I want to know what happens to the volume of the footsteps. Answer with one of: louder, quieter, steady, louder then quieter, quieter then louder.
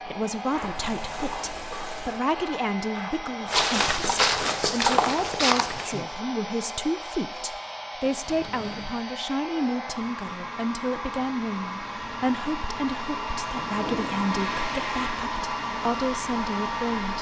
louder.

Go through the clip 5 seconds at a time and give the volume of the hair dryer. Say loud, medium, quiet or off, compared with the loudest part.
medium, medium, loud, loud.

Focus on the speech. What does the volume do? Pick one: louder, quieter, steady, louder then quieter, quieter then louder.
steady.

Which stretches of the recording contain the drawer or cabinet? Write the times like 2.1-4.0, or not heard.
not heard.